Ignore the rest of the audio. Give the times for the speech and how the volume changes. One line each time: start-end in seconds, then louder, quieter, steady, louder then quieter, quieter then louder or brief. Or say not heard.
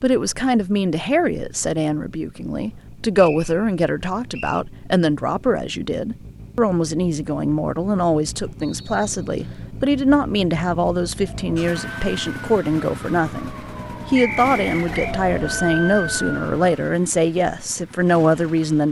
0.0-18.8 steady.